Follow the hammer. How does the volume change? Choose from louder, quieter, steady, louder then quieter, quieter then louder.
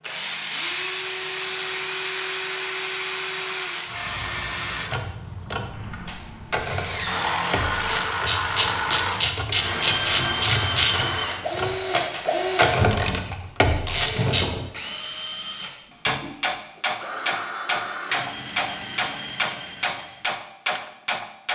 steady.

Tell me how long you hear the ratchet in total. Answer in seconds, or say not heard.
10 s.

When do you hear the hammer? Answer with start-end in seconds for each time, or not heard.
16.1-21.5.